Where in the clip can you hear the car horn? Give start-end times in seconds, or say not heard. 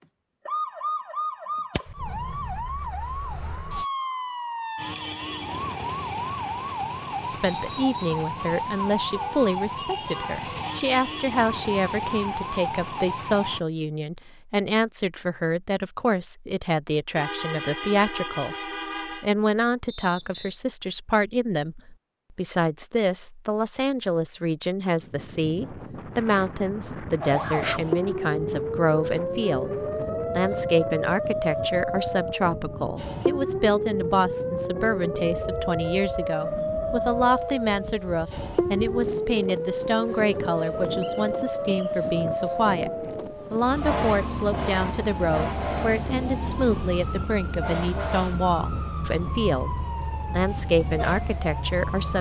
17.1-19.3.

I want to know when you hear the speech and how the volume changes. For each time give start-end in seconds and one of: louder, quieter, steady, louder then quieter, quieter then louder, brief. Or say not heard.
7.2-29.7 steady
30.4-42.9 steady
43.5-52.1 steady.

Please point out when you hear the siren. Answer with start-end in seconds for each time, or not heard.
0.0-13.6, 27.2-52.1.